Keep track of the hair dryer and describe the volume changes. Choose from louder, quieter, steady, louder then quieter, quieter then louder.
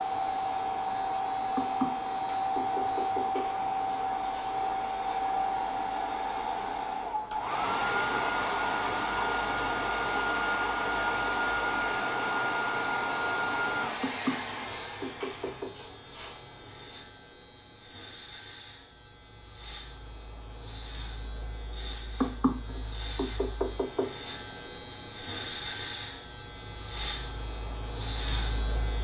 steady.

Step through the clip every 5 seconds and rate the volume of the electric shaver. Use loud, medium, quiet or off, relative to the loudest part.
quiet, quiet, quiet, medium, medium, loud.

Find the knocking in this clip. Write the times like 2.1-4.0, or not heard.
1.6-3.5, 14.0-15.7, 22.2-24.1.